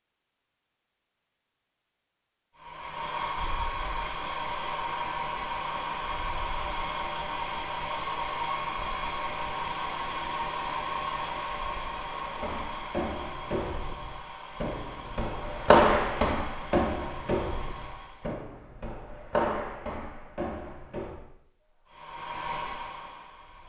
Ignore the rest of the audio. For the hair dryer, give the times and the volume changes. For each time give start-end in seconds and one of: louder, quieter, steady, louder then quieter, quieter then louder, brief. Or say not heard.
2.5-18.4 quieter
21.6-23.6 brief.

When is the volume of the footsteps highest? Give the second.
16 s.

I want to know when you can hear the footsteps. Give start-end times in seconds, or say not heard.
12.1-21.3.